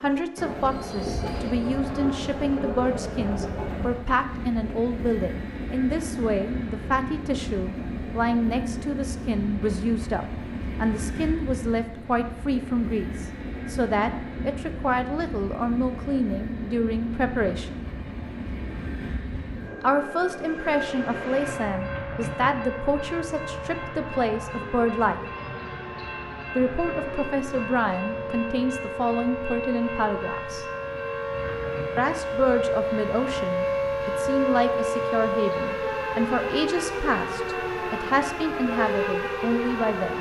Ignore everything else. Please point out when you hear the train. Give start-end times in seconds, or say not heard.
0.0-40.1.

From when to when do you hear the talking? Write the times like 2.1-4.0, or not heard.
0.0-17.8, 19.8-25.2, 26.6-30.6, 31.9-40.1.